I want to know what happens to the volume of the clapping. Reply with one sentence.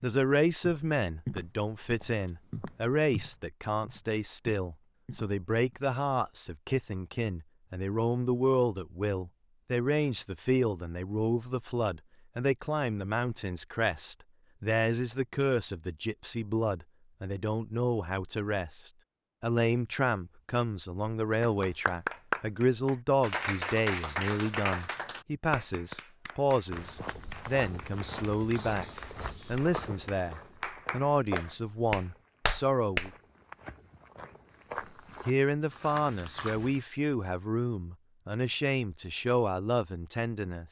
The loudness of the clapping goes down, then up.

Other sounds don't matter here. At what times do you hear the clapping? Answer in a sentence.
You can hear the clapping from 21.4 to 33.1 s.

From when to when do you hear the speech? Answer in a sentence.
The speech can be heard from 0.0 to 28.9 s, from 29.4 to 33.1 s and from 35.2 to 40.6 s.